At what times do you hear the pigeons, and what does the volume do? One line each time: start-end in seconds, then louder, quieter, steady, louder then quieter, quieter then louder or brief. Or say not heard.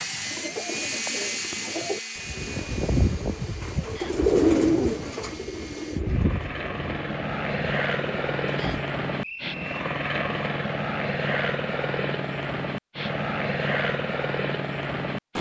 0.0-8.7 louder then quieter.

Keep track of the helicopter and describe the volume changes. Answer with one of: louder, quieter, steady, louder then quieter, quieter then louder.
quieter then louder.